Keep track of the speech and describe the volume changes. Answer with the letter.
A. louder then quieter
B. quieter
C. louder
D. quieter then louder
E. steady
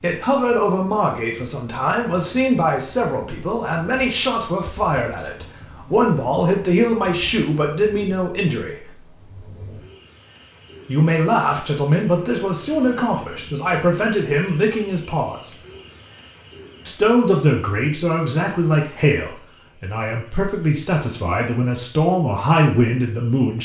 E.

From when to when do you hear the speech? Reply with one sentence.
You can hear the speech from 0.0 to 8.8 s, from 10.8 to 15.5 s and from 16.9 to 23.5 s.